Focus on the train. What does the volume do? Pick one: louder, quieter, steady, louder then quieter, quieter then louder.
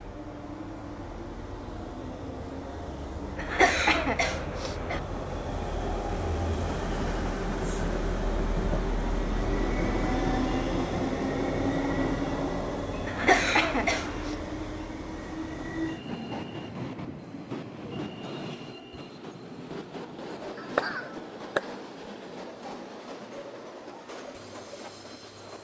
louder then quieter.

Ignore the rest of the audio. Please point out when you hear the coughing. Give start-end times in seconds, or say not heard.
3.4-5.0, 13.1-14.3, 20.6-21.6.